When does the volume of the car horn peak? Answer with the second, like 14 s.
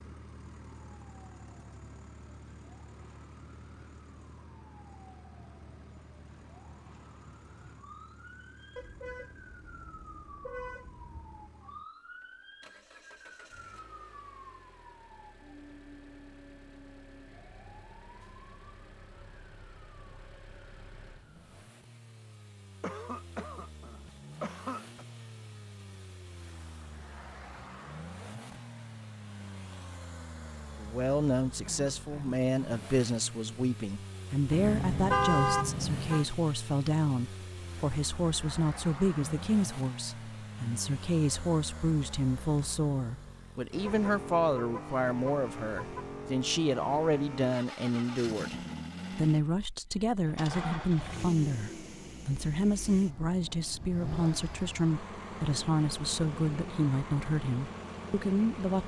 35 s.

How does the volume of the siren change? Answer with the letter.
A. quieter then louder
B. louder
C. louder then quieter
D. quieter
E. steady
C.